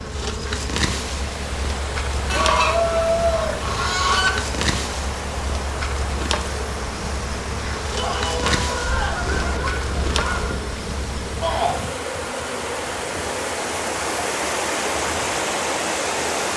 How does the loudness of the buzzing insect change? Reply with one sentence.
The loudness of the buzzing insect goes down.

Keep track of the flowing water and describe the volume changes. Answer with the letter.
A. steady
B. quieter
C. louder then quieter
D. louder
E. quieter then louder
D.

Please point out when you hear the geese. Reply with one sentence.
The geese can be heard from 2.2 to 4.3 s and from 8.4 to 10.6 s.